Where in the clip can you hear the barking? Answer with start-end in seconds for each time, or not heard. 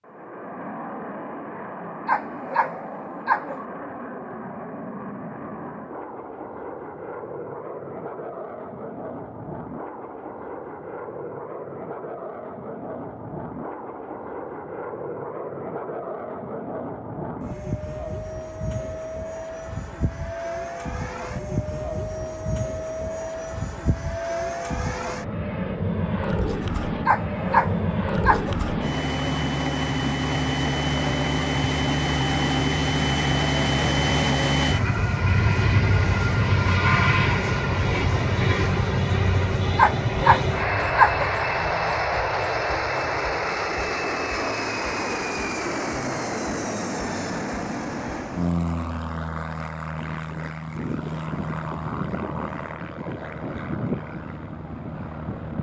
2.0-3.6, 27.1-28.6, 39.8-41.3.